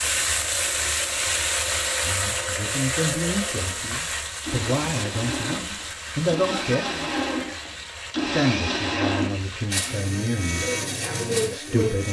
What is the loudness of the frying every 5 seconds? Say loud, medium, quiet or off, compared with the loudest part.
loud, medium, loud.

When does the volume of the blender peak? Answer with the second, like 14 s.
9 s.